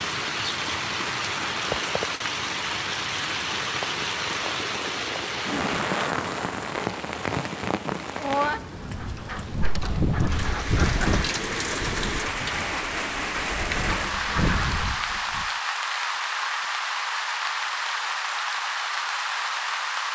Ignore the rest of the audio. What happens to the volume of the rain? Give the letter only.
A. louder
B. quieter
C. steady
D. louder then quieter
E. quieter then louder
C.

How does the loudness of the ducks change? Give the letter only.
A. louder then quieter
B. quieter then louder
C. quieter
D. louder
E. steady
B.